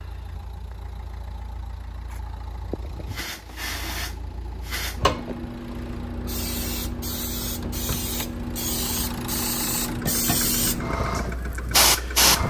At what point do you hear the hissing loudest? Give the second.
12 s.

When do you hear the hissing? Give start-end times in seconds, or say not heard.
3.0-12.4.